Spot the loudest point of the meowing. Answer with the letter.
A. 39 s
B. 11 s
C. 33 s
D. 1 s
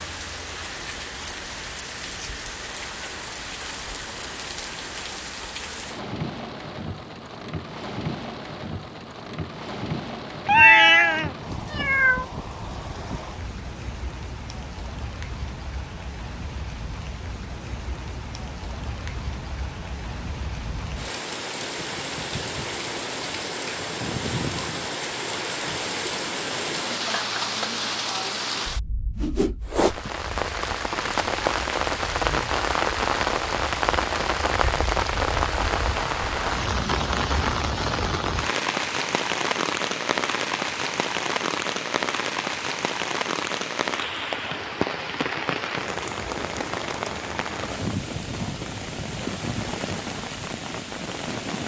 B.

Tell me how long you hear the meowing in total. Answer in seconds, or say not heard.
2 s.